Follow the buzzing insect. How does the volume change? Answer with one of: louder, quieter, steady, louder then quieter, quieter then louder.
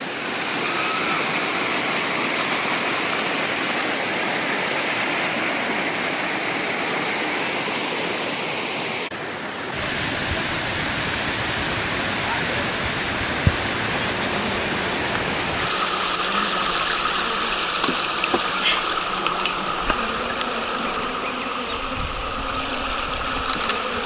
steady.